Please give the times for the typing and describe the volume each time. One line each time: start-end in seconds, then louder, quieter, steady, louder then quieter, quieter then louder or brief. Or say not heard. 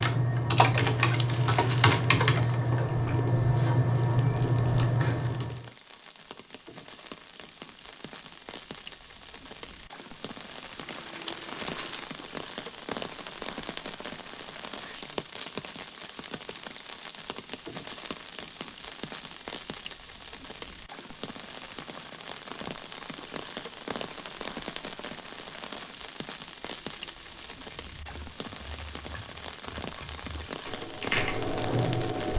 0.0-5.6 steady
27.8-32.3 louder.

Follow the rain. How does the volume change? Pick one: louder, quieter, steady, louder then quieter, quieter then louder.
louder.